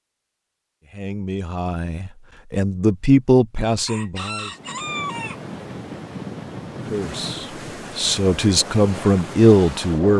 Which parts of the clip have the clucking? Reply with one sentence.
The clucking can be heard from 3.9 to 5.4 s.